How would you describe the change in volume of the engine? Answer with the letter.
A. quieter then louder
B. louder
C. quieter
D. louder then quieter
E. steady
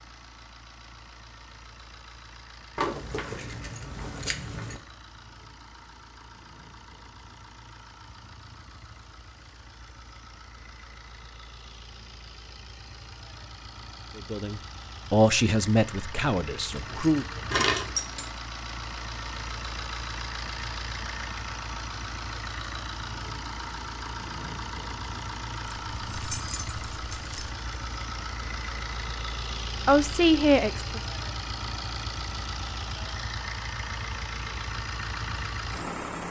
B.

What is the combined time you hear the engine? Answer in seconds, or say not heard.
36 s.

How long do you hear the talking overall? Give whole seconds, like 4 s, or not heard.
4 s.